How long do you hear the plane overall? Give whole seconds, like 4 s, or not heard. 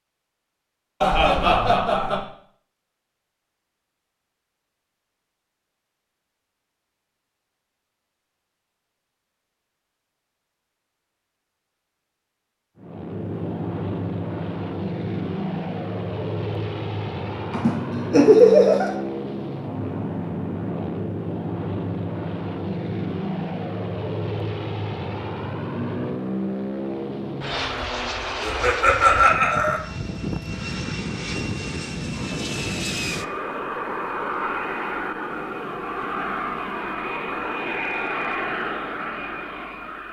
27 s.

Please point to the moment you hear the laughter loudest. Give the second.
18 s.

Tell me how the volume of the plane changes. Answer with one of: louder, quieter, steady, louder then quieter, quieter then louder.
steady.